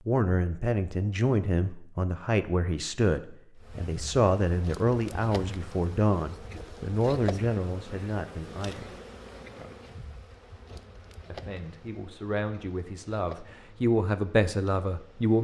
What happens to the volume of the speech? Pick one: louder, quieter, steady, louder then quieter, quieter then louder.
quieter then louder.